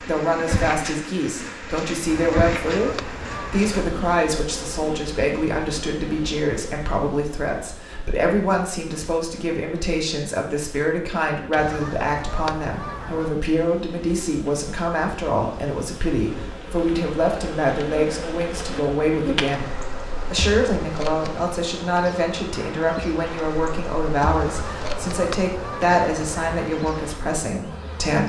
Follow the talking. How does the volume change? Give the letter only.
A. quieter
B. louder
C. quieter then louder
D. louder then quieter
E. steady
E.